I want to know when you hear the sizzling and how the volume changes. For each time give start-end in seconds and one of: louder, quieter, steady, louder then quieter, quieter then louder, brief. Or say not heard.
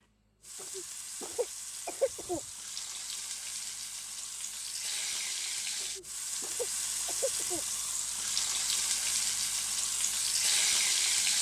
0.0-11.3 louder.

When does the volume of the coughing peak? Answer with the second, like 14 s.
2 s.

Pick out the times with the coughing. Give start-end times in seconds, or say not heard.
0.6-2.4, 5.8-7.7.